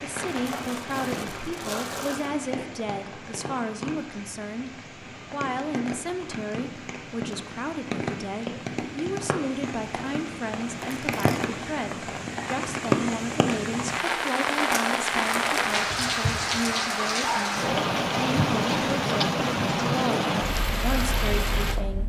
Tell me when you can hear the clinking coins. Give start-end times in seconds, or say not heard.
not heard.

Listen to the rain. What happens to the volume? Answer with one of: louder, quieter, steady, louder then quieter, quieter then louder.
louder.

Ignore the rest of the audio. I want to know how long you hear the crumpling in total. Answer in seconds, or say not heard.
4 s.